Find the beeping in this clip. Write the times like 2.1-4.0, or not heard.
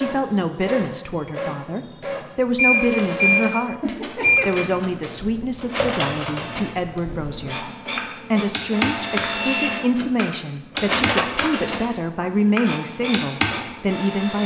2.1-4.5, 11.1-11.6.